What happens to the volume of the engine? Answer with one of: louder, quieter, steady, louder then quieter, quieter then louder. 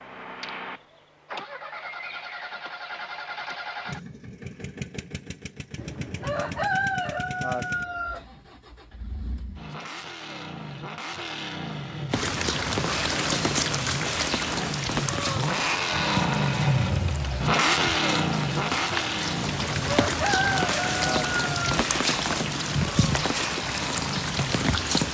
louder then quieter.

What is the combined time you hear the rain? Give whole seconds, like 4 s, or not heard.
13 s.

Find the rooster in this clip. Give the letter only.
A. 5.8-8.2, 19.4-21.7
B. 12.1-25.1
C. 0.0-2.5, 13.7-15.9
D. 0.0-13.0
A.